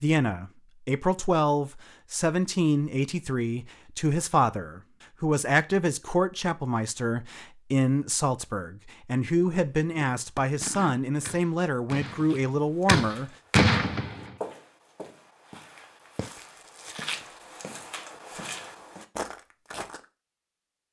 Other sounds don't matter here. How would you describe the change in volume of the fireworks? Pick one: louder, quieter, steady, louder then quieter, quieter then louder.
quieter then louder.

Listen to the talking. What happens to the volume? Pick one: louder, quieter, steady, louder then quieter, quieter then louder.
steady.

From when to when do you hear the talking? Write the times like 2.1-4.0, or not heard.
0.0-13.3.